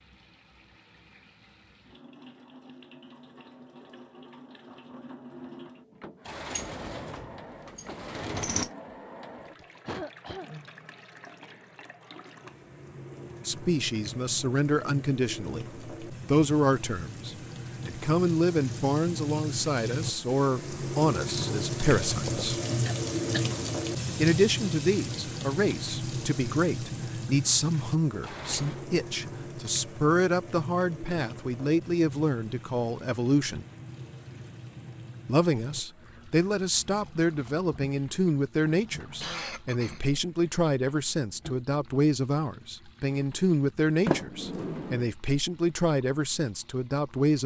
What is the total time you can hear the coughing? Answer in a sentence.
You can hear the coughing for 3 seconds altogether.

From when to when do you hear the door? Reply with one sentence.
You can hear the door from 6.2 to 8.7 s, from 28.2 to 28.9 s and from 44.0 to 45.1 s.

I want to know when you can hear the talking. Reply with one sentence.
The talking can be heard from 13.4 to 22.6 s, from 24.1 to 33.6 s and from 35.2 to 47.4 s.